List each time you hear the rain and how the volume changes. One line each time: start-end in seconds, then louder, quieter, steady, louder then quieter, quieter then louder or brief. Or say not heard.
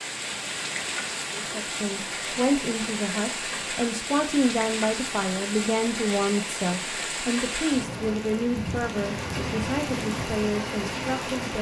0.0-11.5 steady.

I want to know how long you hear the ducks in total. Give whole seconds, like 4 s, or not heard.
not heard.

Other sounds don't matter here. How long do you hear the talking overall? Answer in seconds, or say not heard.
10 s.